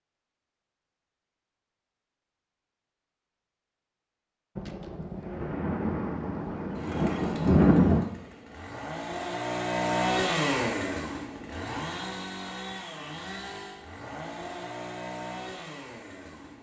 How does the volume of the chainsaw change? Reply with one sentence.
The loudness of the chainsaw goes up, then down.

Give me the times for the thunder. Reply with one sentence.
The thunder can be heard from 4.5 to 8.1 s.